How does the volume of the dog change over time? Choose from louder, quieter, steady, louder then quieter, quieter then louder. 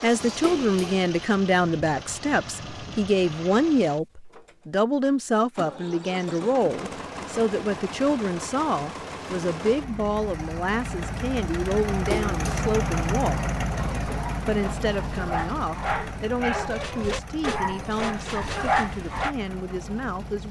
louder.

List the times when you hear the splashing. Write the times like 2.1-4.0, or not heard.
0.4-1.1, 12.1-12.7.